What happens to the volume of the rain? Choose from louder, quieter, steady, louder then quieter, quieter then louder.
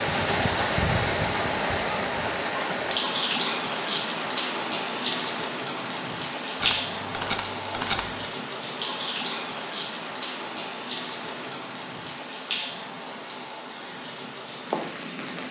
quieter.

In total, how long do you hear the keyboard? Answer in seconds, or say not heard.
2 s.